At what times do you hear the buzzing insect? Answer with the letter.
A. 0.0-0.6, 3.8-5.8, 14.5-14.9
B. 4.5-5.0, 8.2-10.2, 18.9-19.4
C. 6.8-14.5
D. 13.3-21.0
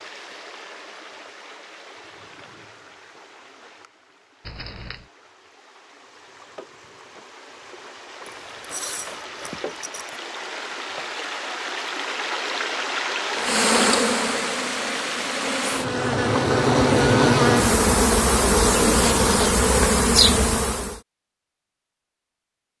D.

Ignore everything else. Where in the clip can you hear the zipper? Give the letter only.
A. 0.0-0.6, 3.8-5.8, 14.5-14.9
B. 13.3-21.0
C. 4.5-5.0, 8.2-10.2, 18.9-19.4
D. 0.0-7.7
C.